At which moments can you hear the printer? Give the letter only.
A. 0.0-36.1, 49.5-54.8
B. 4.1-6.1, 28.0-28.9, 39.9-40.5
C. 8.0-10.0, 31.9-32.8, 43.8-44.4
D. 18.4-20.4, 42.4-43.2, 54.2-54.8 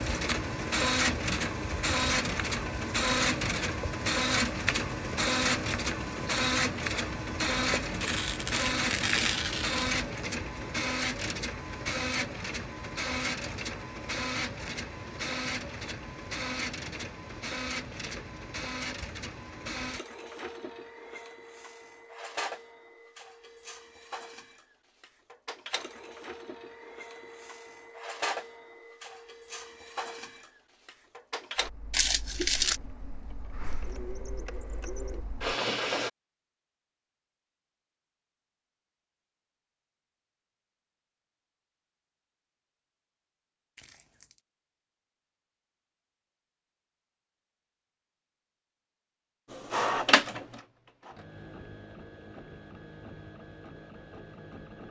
A.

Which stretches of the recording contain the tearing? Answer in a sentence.
The tearing can be heard from 8.0 to 10.0 s, from 31.9 to 32.8 s and from 43.8 to 44.4 s.